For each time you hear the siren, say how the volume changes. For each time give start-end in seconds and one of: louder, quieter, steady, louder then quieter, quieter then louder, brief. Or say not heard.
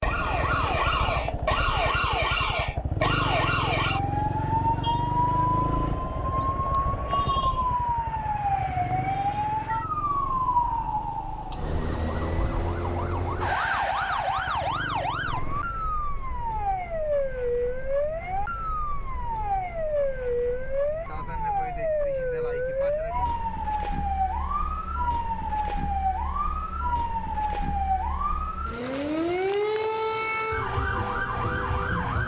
0.0-32.2 steady.